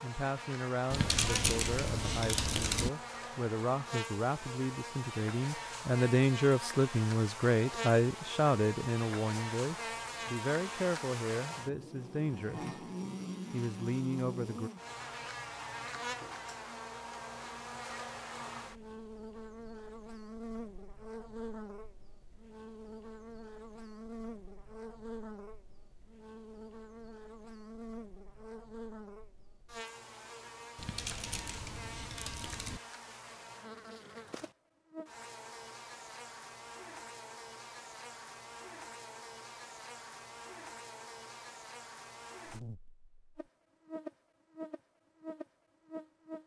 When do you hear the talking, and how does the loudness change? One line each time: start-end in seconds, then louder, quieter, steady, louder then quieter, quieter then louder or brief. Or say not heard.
0.0-12.8 louder then quieter
13.5-14.7 brief.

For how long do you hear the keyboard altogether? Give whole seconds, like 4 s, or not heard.
4 s.